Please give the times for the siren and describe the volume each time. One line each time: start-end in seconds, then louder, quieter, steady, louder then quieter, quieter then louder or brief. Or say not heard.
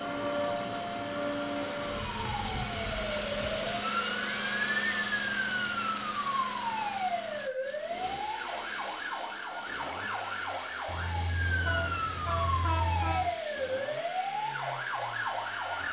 0.0-15.8 steady.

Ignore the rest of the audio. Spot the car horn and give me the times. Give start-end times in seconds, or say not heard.
10.8-13.3.